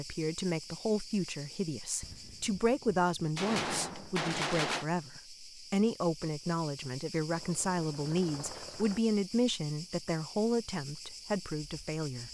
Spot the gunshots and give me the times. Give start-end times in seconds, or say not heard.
2.0-4.8.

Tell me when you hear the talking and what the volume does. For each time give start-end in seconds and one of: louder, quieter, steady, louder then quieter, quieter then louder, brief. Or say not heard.
0.0-12.2 steady.